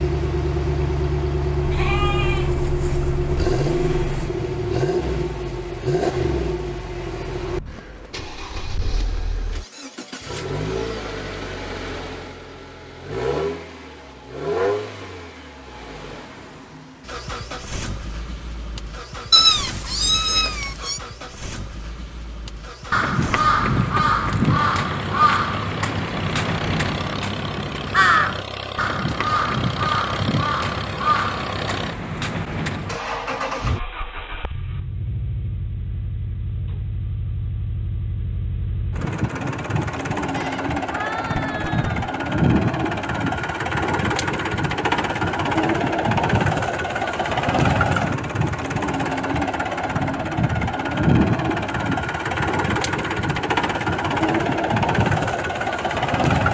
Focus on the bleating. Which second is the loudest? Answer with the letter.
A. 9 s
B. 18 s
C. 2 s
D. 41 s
C.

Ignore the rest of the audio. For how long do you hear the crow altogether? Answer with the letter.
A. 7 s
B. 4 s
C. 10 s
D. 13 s
C.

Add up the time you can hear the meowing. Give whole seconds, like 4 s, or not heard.
2 s.